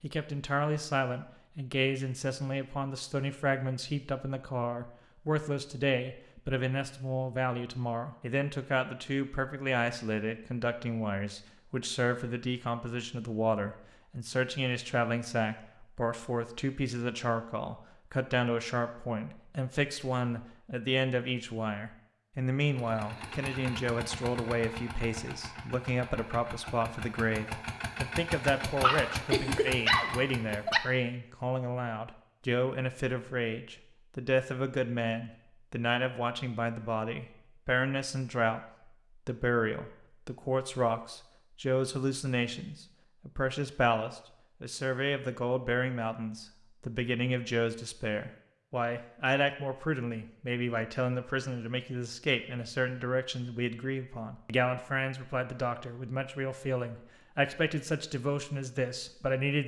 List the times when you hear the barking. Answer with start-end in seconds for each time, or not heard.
28.8-30.8.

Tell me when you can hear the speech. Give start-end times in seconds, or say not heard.
0.0-38.6, 39.2-59.6.